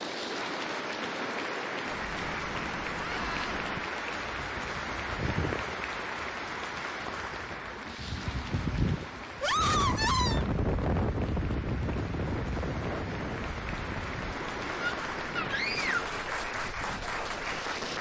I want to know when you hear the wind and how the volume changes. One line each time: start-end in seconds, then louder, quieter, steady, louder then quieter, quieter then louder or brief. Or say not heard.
0.0-17.9 louder then quieter.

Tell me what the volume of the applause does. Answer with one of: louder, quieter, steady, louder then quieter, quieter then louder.
quieter then louder.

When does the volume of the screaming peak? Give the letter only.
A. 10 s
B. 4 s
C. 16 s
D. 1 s
A.